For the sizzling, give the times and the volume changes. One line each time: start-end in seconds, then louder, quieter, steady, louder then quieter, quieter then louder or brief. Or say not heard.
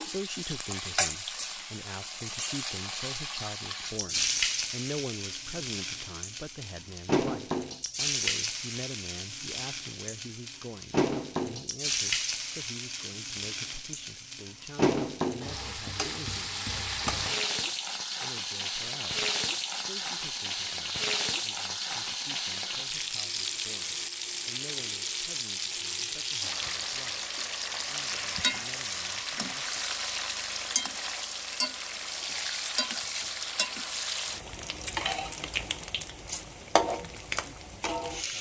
0.0-38.3 steady.